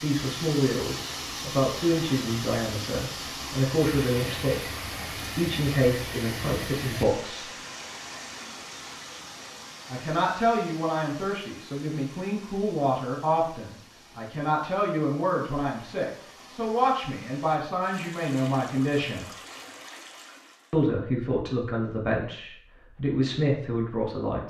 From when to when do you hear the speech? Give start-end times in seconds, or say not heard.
0.0-7.5, 9.9-19.2, 20.7-24.4.